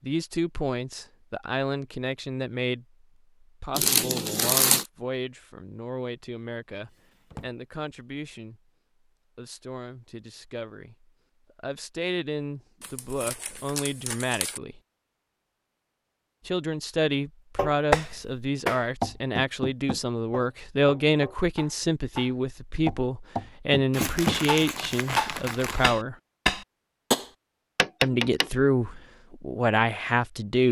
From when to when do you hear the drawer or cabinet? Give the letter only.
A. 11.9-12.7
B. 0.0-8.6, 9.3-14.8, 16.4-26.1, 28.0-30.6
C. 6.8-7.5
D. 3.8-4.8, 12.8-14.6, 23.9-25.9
C.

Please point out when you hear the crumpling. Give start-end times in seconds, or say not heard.
3.8-4.8, 12.8-14.6, 23.9-25.9.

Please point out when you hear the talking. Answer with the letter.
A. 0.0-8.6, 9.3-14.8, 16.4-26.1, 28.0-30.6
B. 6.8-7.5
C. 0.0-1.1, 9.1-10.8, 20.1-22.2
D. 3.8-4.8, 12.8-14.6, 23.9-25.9
A.